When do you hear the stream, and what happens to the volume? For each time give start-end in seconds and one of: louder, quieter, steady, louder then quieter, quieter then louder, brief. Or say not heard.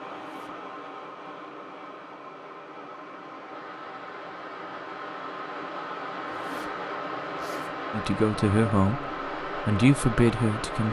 0.0-10.8 louder.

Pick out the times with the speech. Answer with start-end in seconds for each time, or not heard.
7.9-10.8.